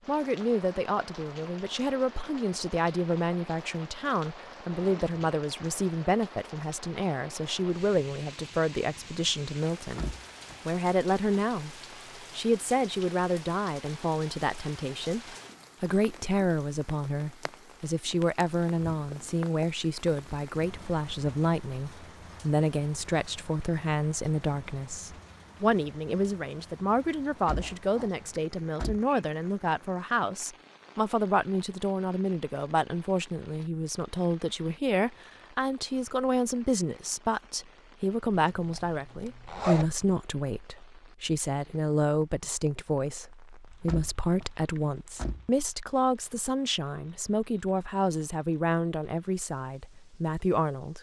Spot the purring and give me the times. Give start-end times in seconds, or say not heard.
not heard.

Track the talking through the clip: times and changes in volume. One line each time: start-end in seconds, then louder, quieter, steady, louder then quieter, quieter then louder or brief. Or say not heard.
0.1-50.9 steady.